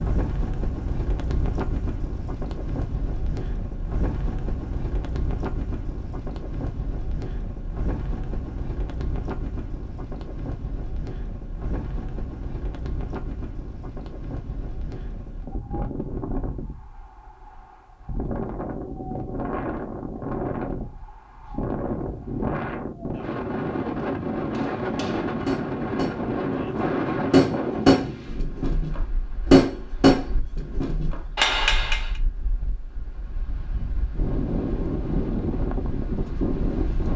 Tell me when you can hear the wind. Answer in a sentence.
The wind can be heard from 0.0 to 37.1 s.